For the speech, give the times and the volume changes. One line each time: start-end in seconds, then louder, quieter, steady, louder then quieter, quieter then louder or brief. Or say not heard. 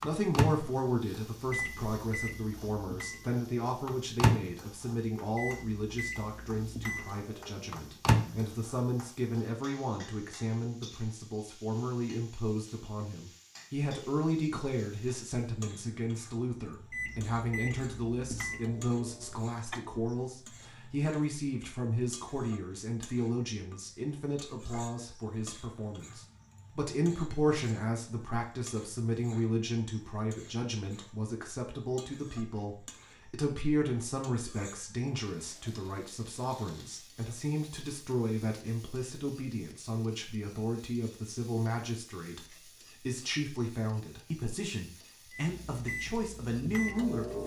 0.0-47.4 steady.